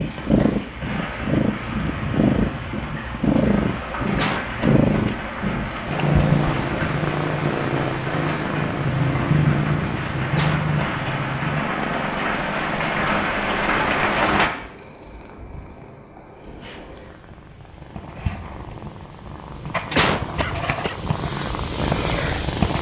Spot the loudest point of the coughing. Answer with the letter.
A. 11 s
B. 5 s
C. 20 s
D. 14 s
C.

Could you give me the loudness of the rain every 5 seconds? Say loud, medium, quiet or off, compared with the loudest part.
medium, medium, loud, off, off.